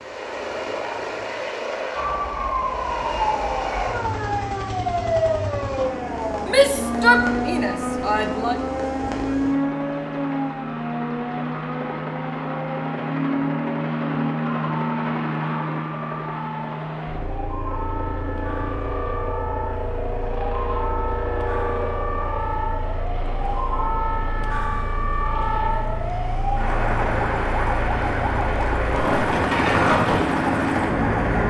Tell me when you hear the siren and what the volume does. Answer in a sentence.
The siren can be heard from 1.9 to 31.4 s, getting quieter then louder.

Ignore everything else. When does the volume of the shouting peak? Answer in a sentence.
The loudest moment of the shouting is at 7 seconds.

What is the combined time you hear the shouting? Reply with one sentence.
The shouting can be heard for 2 seconds in total.